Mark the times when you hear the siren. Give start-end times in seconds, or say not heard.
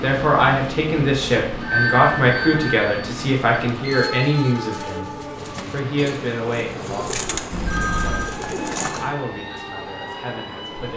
8.2-10.9.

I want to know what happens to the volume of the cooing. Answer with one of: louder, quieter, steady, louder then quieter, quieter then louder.
louder.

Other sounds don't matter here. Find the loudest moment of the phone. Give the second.
2 s.